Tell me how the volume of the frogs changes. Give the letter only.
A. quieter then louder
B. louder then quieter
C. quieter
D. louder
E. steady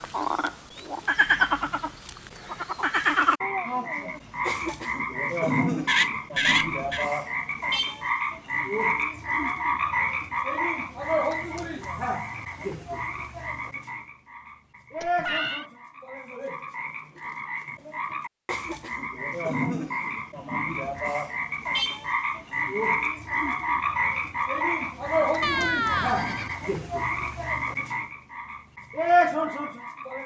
A.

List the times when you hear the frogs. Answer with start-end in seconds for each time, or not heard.
0.0-30.2.